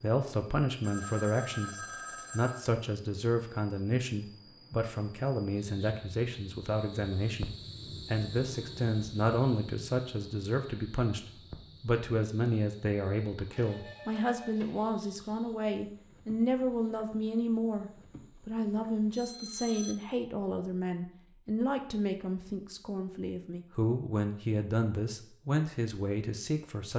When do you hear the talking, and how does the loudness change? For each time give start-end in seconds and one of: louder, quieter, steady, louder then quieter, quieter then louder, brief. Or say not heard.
0.0-26.9 steady.